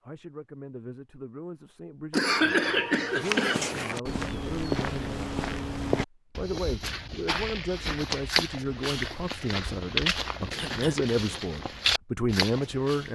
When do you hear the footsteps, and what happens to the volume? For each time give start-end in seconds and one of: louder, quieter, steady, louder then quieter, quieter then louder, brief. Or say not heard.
3.0-13.1 steady.